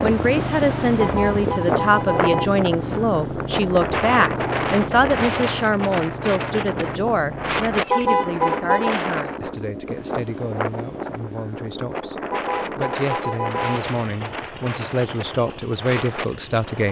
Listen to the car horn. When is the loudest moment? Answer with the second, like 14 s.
8 s.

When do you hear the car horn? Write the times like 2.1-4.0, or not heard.
0.9-2.5, 7.9-8.9, 12.3-13.8.